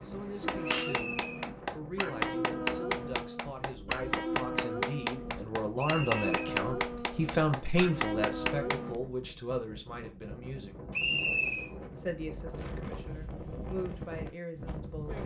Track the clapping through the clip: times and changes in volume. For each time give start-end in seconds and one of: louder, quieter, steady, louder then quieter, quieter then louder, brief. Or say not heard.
0.4-8.9 steady.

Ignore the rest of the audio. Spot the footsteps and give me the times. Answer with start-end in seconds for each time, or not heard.
not heard.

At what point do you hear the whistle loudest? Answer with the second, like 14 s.
11 s.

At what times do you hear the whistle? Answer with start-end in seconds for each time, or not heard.
0.7-1.5, 5.8-6.2, 10.9-11.7.